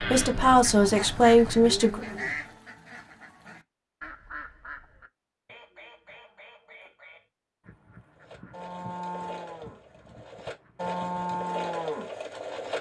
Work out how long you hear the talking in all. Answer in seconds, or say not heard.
2 s.